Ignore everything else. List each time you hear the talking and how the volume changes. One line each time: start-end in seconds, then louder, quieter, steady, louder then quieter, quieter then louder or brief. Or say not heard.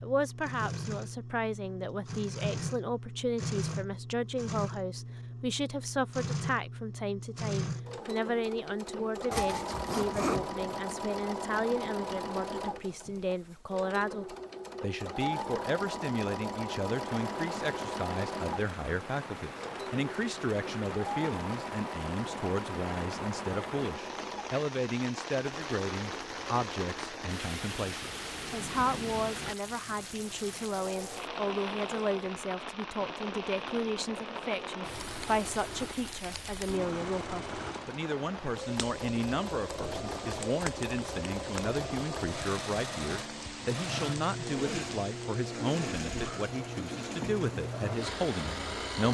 0.0-49.1 steady.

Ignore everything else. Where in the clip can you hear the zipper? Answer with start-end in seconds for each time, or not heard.
9.3-10.8.